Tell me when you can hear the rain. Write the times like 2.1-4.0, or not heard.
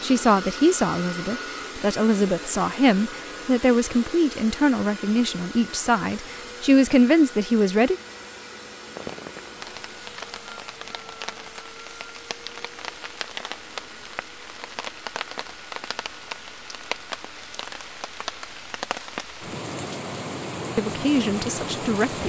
8.8-22.2.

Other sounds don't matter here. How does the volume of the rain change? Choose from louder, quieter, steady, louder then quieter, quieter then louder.
louder.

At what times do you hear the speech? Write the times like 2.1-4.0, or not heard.
0.0-8.0, 20.8-22.2.